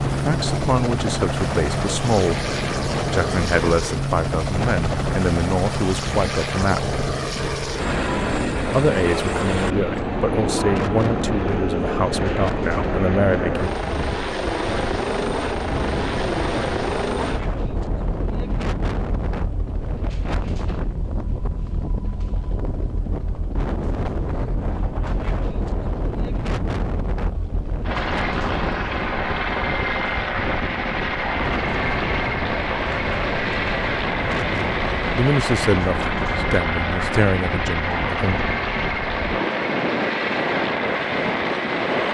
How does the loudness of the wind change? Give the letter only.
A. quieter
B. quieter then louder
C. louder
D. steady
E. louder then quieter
D.